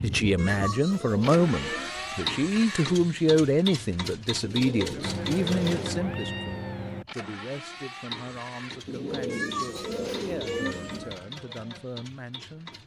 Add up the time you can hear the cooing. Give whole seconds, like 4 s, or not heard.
6 s.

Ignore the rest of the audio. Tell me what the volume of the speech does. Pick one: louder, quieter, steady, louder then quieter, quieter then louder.
quieter.